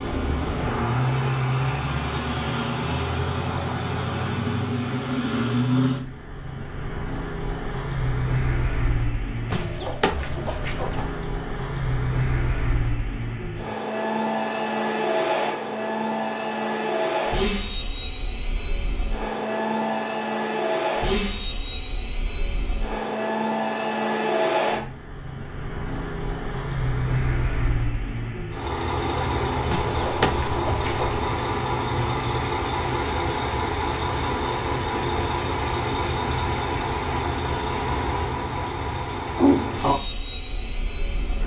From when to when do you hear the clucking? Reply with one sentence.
You can hear the clucking from 9.4 to 11.2 s and from 29.6 to 31.3 s.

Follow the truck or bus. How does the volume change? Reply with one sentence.
The volume of the truck or bus stays about the same.